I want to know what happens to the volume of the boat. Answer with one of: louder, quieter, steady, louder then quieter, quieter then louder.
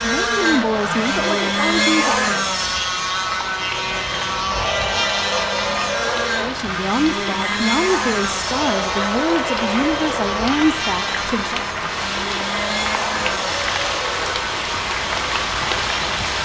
quieter.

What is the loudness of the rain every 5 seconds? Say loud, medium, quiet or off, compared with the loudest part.
medium, medium, loud, loud.